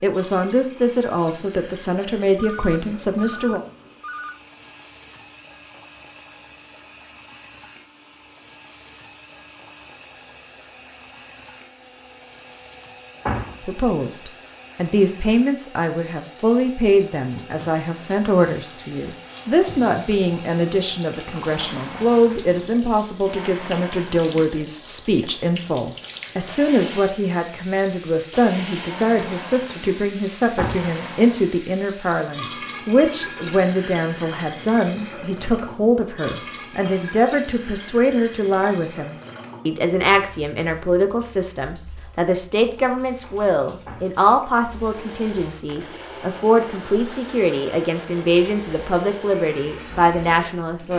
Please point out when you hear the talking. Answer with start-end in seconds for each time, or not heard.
0.0-3.6, 13.6-50.9.